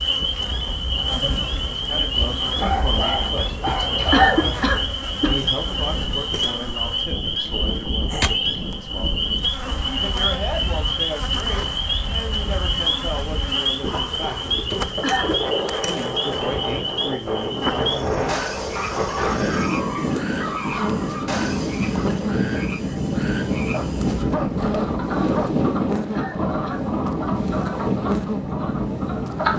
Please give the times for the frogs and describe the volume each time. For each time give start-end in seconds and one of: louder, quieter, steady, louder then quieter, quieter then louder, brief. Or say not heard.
0.0-29.5 quieter.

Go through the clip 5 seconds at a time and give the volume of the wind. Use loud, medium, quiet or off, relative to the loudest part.
medium, medium, medium, loud, loud, loud.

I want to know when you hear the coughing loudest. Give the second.
4 s.